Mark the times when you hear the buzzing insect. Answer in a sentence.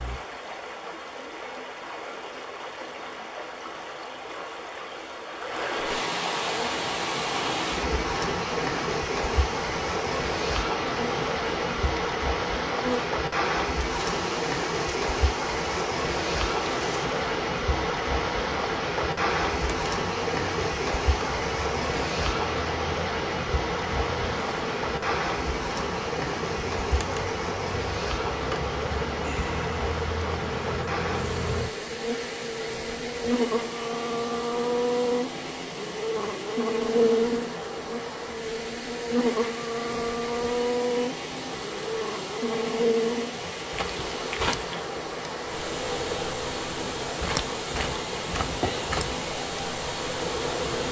The buzzing insect can be heard from 6.4 to 50.8 s.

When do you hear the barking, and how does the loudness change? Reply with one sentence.
You can't hear the barking here.